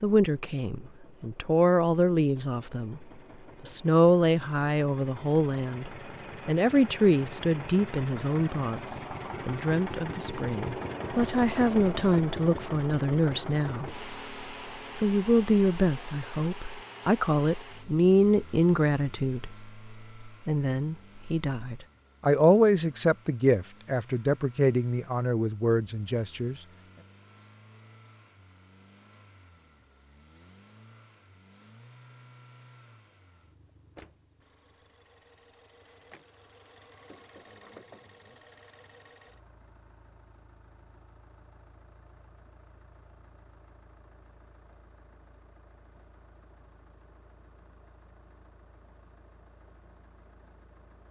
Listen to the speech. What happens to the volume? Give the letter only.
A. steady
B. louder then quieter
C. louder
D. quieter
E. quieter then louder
A.